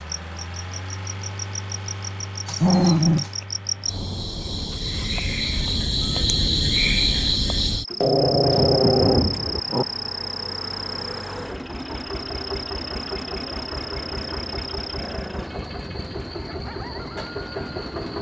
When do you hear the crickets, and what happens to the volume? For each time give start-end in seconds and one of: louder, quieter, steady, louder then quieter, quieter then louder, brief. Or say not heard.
0.0-18.1 louder then quieter.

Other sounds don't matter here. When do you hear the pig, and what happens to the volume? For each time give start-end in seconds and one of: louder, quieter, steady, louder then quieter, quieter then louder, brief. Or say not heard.
not heard.